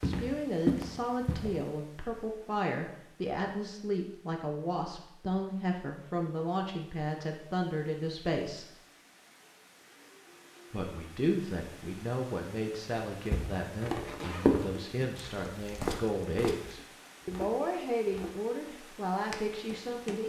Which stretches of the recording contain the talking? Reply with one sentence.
The talking can be heard from 0.0 to 8.7 s and from 10.7 to 20.2 s.